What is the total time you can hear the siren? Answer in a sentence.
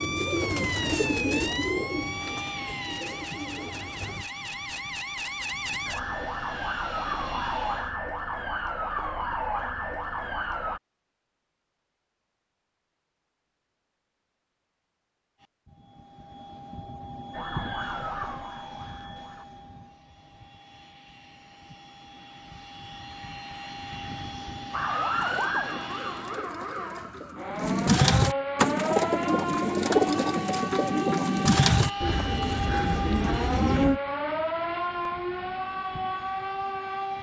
The siren can be heard for 25 seconds in total.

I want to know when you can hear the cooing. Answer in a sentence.
You can hear the cooing from 0.0 to 4.2 s and from 25.1 to 34.0 s.